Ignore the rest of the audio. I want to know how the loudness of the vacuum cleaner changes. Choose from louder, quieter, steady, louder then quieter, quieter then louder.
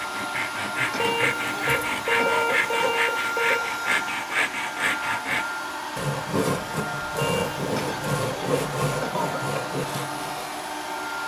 steady.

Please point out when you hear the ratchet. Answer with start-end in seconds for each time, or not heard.
not heard.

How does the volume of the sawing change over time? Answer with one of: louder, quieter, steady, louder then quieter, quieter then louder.
steady.